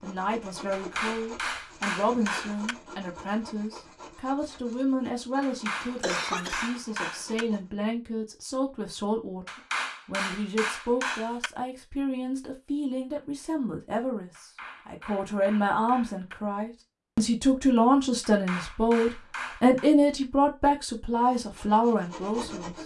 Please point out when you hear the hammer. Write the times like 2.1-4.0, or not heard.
0.7-2.8, 5.4-7.5, 9.4-11.5, 14.3-16.4, 18.2-19.9.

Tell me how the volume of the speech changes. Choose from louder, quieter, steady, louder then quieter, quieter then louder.
louder.